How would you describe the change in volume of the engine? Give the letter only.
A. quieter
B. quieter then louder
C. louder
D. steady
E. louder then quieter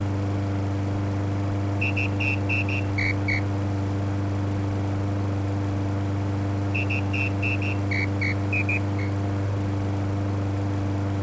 D.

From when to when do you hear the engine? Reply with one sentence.
The engine can be heard from 0.0 to 11.1 s.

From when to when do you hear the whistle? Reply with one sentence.
You can hear the whistle from 1.8 to 3.4 s and from 6.7 to 9.1 s.